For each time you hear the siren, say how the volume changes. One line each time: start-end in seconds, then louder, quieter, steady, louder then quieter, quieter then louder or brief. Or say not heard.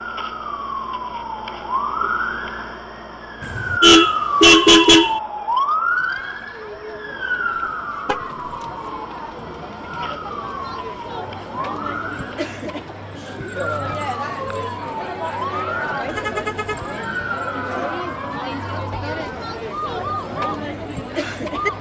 0.0-21.7 quieter.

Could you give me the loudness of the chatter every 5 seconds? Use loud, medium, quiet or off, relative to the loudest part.
quiet, medium, loud, loud, loud.